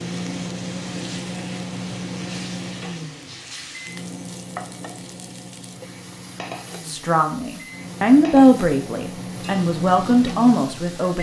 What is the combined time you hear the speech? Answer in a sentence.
The speech can be heard for 4 seconds in total.